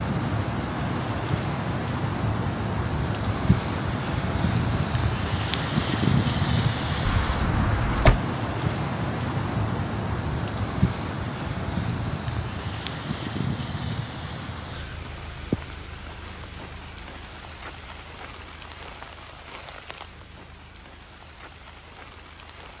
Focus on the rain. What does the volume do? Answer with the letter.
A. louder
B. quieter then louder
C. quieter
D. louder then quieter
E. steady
C.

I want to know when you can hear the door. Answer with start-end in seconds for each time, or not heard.
7.0-8.2.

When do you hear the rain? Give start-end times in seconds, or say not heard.
0.0-22.7.